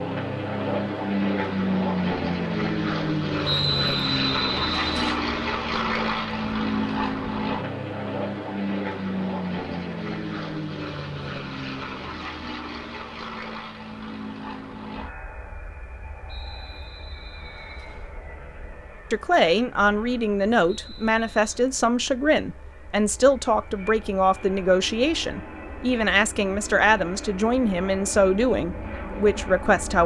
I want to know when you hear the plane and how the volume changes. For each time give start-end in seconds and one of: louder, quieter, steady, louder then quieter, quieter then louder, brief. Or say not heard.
0.0-30.0 quieter then louder.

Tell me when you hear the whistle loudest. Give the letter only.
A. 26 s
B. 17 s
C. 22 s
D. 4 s
D.